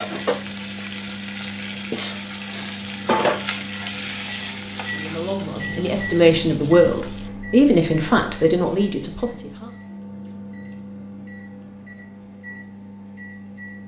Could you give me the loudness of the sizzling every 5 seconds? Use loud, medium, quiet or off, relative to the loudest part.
loud, quiet, off.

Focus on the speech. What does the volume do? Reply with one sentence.
The volume of the speech goes up, then down.